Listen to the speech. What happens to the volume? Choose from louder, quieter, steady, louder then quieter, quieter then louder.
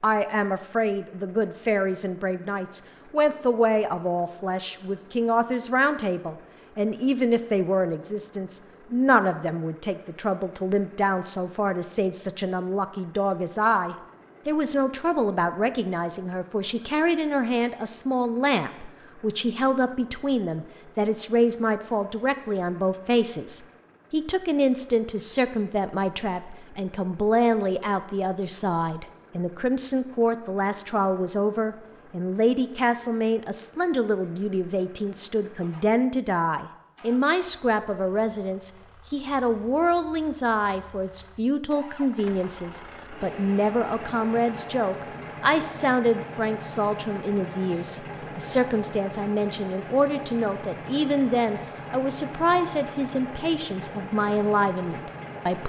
steady.